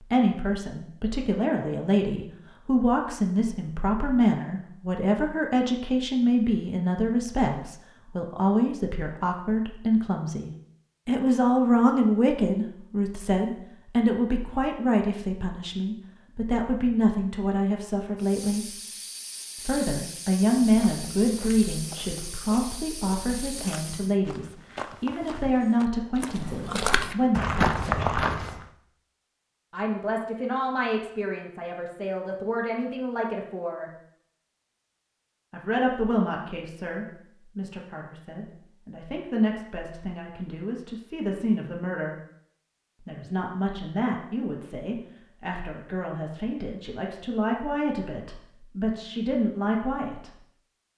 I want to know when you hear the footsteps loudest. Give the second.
28 s.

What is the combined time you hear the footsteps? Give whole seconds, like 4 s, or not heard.
8 s.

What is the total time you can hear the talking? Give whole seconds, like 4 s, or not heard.
46 s.